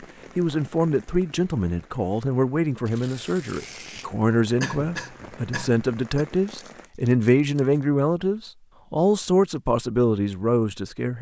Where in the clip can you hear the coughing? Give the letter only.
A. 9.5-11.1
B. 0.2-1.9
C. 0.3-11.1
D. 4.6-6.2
D.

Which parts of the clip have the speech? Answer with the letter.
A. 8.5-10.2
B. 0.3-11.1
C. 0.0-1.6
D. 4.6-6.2
B.